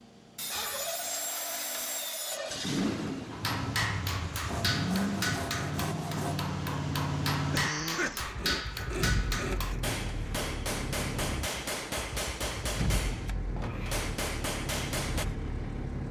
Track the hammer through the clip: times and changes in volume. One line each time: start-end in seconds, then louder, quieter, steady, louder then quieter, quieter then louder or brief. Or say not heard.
3.3-15.2 steady.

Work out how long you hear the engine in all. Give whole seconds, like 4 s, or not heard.
16 s.